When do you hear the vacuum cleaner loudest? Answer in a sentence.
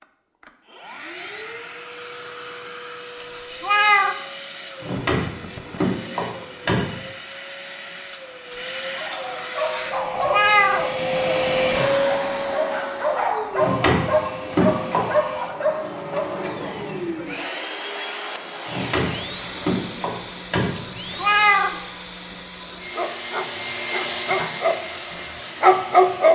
The loudest moment of the vacuum cleaner is at 12 seconds.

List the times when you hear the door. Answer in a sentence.
The door can be heard from 4.8 to 7.0 s, from 13.6 to 15.2 s and from 18.6 to 21.2 s.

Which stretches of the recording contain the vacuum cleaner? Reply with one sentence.
The vacuum cleaner can be heard from 0.0 to 26.3 s.